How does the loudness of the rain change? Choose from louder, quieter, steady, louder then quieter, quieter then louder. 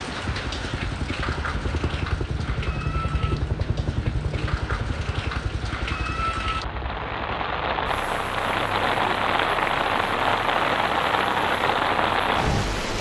louder.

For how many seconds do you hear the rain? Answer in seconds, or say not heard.
13 s.